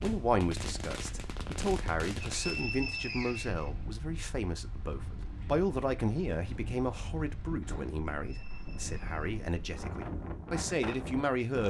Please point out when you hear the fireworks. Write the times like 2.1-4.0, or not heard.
0.0-2.6.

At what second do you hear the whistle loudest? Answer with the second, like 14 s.
3 s.